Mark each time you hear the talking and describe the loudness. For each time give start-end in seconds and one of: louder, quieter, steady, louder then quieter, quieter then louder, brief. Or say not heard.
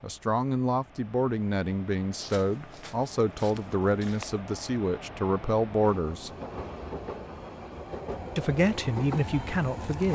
0.0-6.3 steady
8.3-10.1 brief.